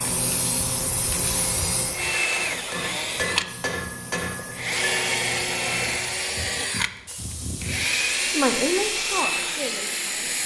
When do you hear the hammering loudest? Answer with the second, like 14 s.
3 s.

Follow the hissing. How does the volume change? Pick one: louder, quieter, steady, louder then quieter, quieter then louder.
quieter then louder.